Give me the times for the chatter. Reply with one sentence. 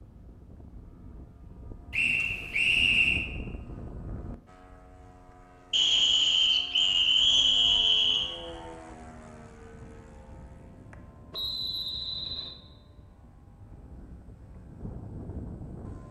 The chatter can't be heard in this clip.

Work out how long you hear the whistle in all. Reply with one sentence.
You can hear the whistle for 5 seconds altogether.